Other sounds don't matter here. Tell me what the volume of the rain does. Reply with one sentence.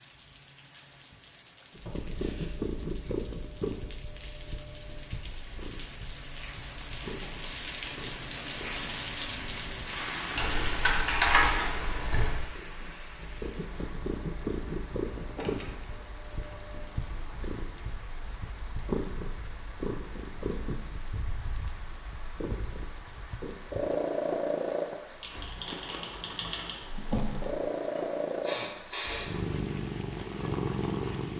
The volume of the rain goes up, then down.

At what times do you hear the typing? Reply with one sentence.
You can hear the typing from 10.3 to 12.3 s and from 25.2 to 26.8 s.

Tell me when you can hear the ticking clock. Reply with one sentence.
You can't hear the ticking clock here.